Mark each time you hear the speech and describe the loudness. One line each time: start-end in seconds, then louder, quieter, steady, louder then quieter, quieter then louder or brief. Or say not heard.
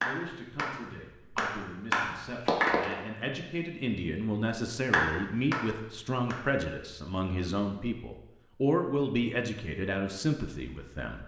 0.0-11.2 louder.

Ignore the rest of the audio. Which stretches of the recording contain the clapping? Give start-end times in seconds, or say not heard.
0.0-3.0, 4.9-6.5.